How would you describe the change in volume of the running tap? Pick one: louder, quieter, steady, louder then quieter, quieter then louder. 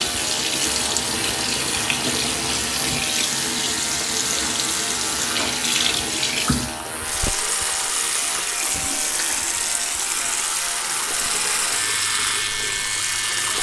steady.